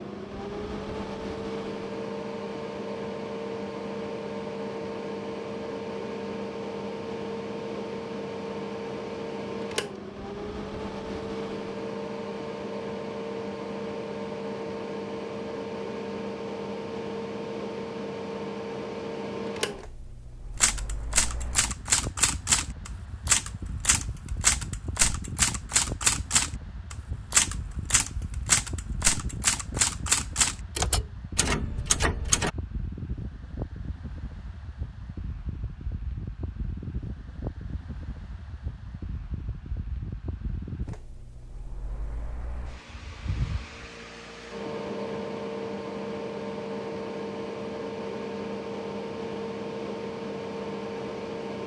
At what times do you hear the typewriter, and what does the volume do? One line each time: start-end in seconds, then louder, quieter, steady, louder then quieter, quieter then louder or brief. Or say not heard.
20.6-32.5 steady.